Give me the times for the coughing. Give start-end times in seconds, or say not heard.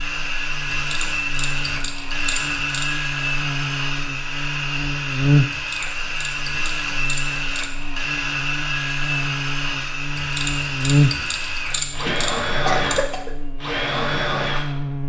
12.1-13.3.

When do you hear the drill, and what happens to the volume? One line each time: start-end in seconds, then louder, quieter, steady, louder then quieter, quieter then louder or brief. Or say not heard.
0.0-14.8 steady.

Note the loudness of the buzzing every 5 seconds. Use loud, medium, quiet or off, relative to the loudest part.
medium, loud, loud.